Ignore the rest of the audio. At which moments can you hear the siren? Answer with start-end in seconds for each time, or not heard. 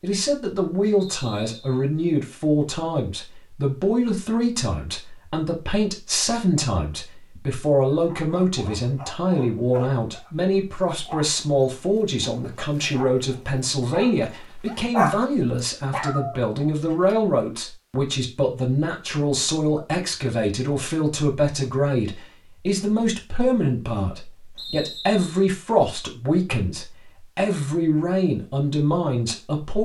not heard.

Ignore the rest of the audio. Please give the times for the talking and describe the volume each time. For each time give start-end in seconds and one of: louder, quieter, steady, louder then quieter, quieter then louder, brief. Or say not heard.
0.0-29.8 steady.